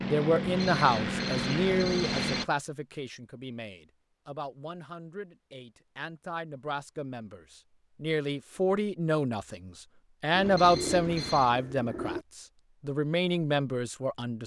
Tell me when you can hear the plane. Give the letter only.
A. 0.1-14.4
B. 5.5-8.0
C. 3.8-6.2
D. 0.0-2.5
D.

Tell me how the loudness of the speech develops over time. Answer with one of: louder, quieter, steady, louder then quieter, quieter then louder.
quieter then louder.